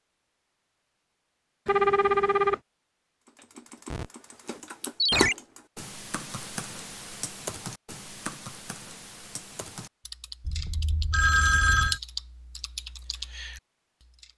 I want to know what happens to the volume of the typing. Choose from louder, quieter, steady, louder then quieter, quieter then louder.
quieter then louder.